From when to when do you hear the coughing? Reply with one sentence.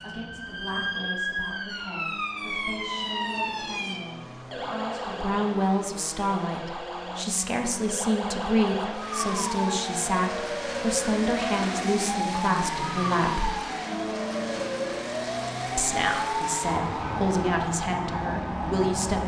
You can't hear the coughing here.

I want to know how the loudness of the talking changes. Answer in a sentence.
The volume of the talking goes up.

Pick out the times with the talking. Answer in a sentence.
The talking can be heard from 0.0 to 13.5 s and from 15.8 to 19.2 s.